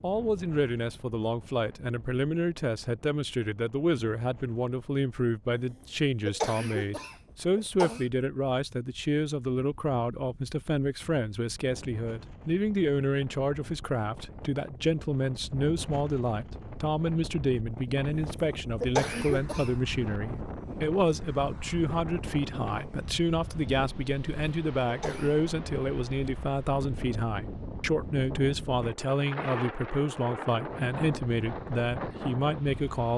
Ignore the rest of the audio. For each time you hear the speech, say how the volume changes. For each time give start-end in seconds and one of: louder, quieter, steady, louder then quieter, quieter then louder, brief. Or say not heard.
0.0-33.1 steady.